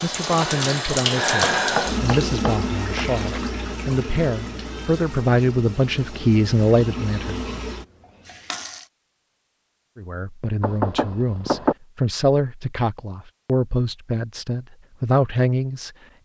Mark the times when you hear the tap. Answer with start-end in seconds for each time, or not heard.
0.0-8.8.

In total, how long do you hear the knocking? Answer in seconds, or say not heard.
3 s.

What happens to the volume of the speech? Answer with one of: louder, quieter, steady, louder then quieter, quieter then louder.
steady.